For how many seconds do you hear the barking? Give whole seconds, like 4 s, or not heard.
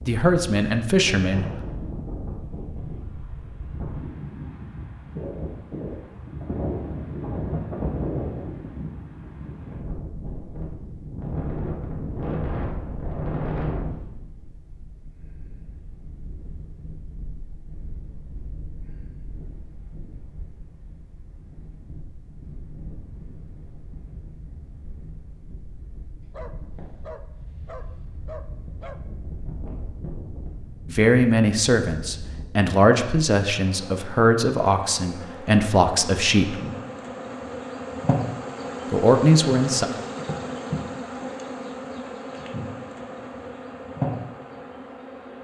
3 s.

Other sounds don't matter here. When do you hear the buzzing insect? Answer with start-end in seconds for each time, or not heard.
33.5-45.4.